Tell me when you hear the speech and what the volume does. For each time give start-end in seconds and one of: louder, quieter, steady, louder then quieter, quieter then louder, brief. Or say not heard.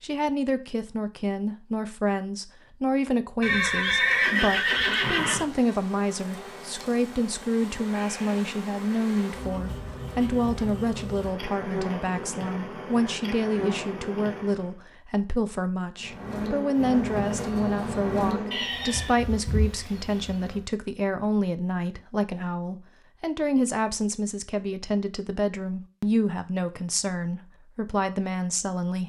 0.0-29.0 steady.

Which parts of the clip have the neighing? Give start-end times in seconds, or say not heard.
3.4-5.5, 18.5-19.1.